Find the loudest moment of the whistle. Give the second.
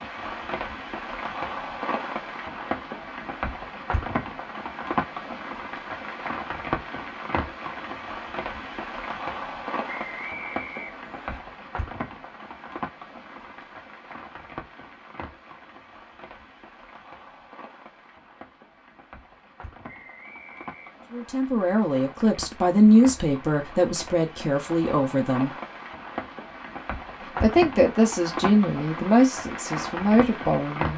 10 s.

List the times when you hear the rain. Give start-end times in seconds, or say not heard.
0.0-30.9.